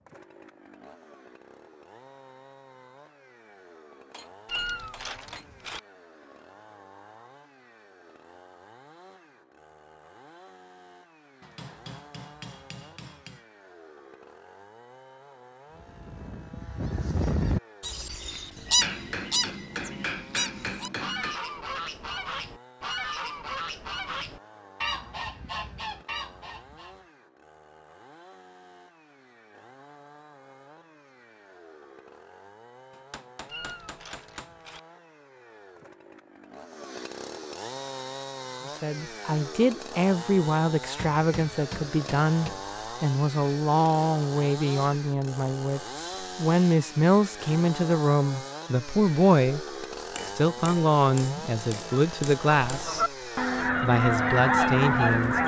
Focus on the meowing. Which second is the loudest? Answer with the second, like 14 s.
5 s.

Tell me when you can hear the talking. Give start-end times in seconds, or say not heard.
38.8-53.1, 53.8-55.4.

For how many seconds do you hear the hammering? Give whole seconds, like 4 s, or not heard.
12 s.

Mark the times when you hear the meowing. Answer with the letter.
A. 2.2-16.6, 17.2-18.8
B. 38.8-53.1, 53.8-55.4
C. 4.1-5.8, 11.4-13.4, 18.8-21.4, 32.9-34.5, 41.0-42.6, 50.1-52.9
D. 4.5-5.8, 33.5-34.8
D.